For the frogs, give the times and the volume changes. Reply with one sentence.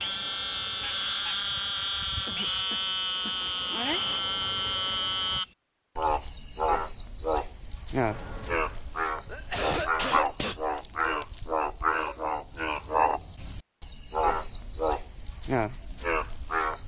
You can hear the frogs from 0.0 to 16.8 s, at a steady volume.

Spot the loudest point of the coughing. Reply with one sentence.
The volume of the coughing peaks at 10 seconds.